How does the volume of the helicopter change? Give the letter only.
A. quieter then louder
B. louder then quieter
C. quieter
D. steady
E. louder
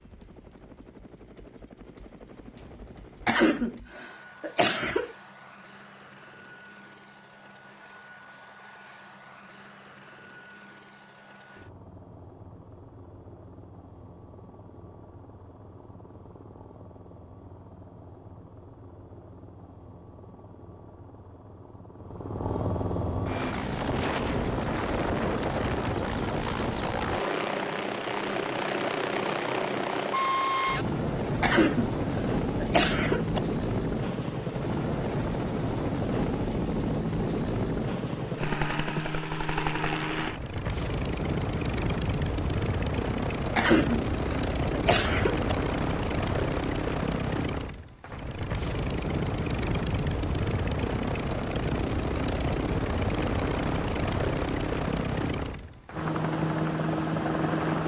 E.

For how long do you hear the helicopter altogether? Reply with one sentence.
You can hear the helicopter for 58 seconds altogether.